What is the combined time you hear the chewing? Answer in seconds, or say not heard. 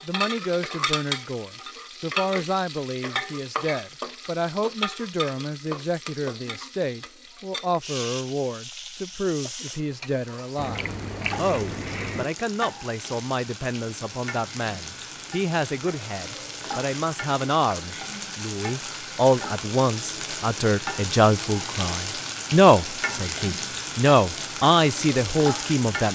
2 s.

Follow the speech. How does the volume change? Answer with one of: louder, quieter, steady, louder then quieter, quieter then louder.
louder.